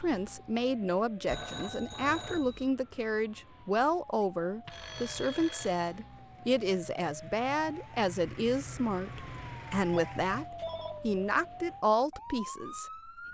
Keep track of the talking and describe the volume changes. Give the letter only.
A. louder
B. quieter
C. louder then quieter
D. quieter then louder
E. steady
E.